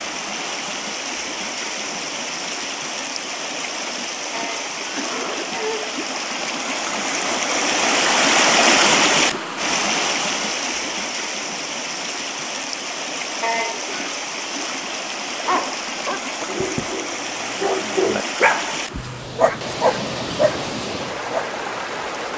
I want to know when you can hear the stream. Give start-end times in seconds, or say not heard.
0.0-22.3.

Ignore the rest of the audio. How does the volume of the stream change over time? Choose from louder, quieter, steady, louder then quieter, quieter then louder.
louder then quieter.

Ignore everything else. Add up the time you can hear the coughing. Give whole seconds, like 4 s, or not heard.
2 s.